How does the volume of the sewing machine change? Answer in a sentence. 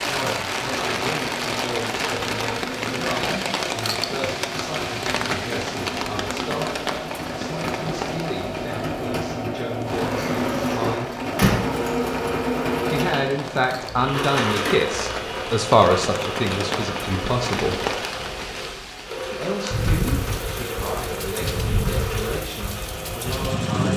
The loudness of the sewing machine goes up, then down.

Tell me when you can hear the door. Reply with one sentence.
The door can be heard from 10.2 to 11.6 s.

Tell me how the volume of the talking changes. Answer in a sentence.
The loudness of the talking goes up, then down.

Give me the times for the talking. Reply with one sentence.
The talking can be heard from 0.1 to 11.2 s, from 12.8 to 17.9 s and from 19.3 to 23.9 s.